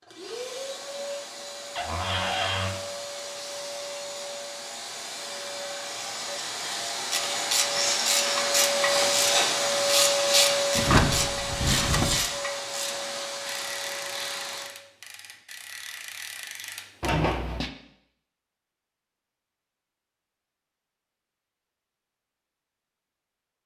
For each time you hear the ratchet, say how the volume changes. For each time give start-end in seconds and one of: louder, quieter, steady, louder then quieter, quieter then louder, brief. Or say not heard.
7.1-17.1 quieter.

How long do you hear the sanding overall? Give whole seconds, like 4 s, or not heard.
not heard.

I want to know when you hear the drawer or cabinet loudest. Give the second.
11 s.